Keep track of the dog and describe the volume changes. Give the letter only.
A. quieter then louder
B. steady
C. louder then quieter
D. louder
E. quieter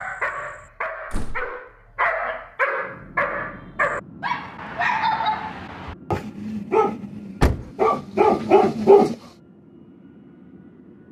D.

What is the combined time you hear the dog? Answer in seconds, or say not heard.
9 s.